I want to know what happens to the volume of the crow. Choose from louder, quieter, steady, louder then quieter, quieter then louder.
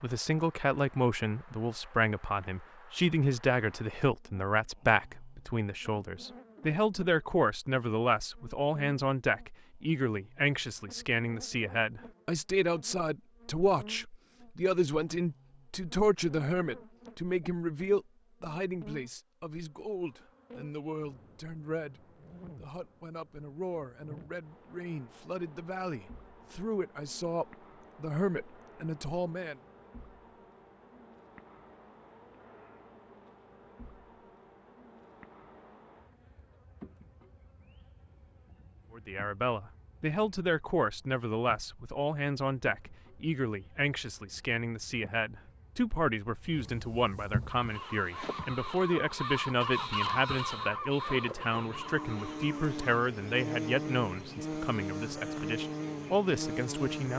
louder then quieter.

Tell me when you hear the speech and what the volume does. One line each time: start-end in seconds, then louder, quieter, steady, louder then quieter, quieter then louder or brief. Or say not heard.
0.0-29.6 quieter
38.9-57.1 steady.